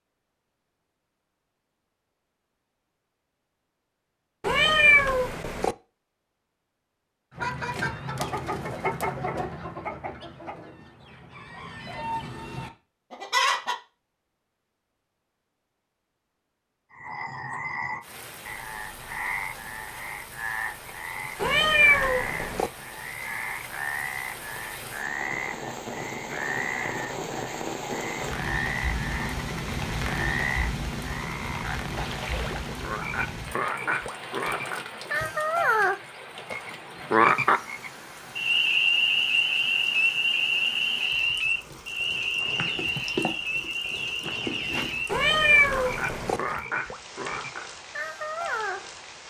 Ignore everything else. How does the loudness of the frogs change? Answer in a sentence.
The loudness of the frogs goes up, then down.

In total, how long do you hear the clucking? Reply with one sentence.
The clucking can be heard for 9 seconds in total.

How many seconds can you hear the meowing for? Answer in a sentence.
The meowing can be heard for 4 seconds in total.